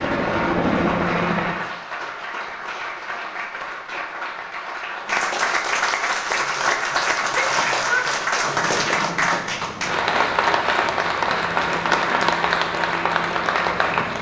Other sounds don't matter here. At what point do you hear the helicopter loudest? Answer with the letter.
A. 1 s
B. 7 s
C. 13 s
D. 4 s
A.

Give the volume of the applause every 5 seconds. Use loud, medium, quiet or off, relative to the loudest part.
medium, loud, loud.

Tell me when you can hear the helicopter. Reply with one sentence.
The helicopter can be heard from 0.0 to 1.6 s and from 8.4 to 14.1 s.